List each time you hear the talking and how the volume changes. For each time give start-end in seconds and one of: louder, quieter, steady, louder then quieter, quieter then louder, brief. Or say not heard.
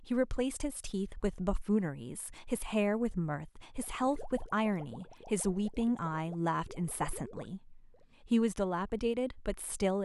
0.0-9.9 steady.